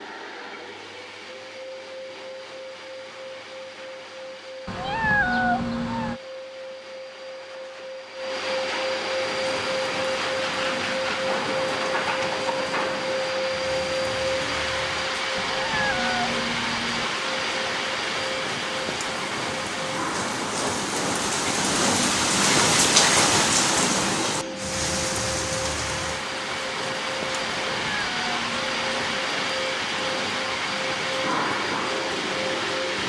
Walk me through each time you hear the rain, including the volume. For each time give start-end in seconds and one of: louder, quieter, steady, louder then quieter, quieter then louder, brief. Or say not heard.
9.2-33.0 louder then quieter.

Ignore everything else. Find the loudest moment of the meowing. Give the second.
5 s.